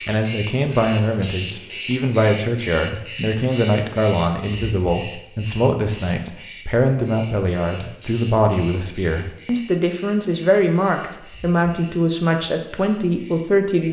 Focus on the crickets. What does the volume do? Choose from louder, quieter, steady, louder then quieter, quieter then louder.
quieter.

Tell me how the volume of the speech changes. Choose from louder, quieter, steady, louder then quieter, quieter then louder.
steady.